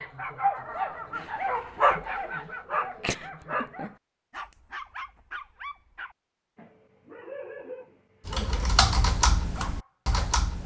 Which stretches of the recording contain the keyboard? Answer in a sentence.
You can hear the keyboard from 8.2 to 10.6 s.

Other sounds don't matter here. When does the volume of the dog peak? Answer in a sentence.
The volume of the dog peaks at 2 seconds.